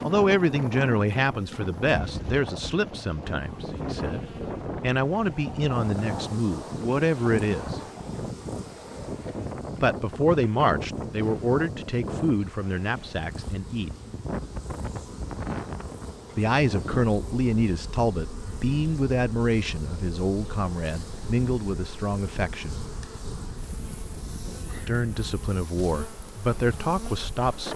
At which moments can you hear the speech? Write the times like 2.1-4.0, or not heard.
0.0-7.8, 9.8-13.9, 16.4-22.8, 24.9-27.7.